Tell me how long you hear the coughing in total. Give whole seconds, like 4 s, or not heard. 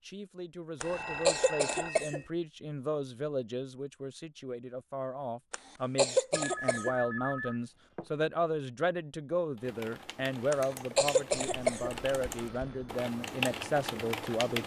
4 s.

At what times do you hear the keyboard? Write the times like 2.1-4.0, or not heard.
9.6-14.6.